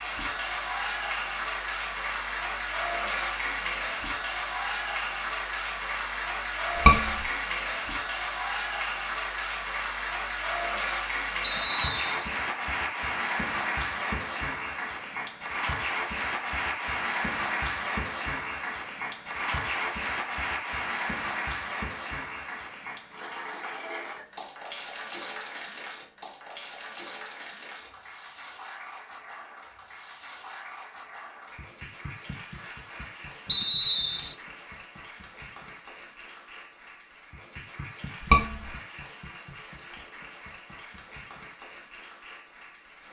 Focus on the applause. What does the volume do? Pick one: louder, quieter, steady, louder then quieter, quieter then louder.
quieter.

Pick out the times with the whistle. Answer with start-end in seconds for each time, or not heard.
11.4-12.3, 33.5-34.4.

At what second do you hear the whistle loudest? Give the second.
34 s.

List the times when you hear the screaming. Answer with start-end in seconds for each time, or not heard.
6.8-7.2, 38.3-38.7.